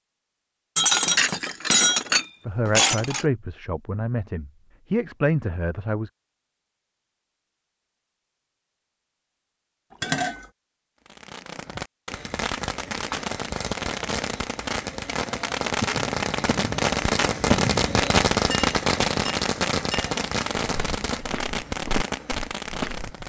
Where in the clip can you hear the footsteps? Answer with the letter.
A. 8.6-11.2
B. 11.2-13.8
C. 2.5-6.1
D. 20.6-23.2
D.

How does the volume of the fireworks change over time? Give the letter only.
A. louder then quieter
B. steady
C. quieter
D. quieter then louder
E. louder
A.